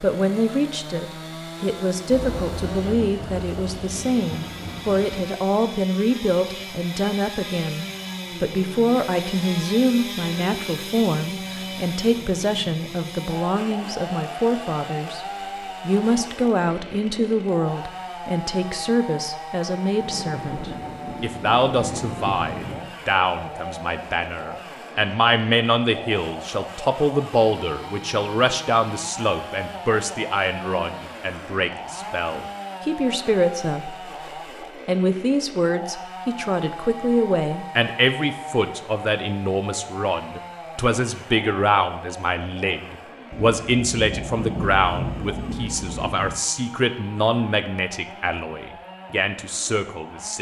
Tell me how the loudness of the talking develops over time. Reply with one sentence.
The loudness of the talking stays about the same.